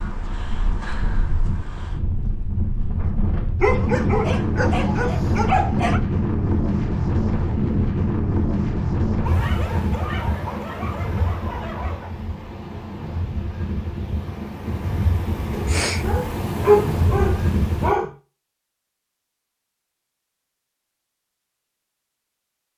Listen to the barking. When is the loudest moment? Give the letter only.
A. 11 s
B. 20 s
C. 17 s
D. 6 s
C.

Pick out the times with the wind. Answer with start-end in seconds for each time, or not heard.
0.0-18.0.